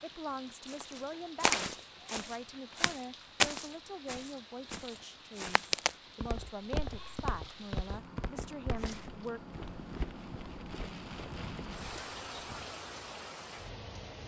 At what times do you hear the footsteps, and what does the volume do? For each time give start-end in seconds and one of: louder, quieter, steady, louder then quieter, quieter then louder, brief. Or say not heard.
0.7-12.7 quieter.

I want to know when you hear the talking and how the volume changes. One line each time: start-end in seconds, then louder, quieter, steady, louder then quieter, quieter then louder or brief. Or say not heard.
0.0-9.4 steady.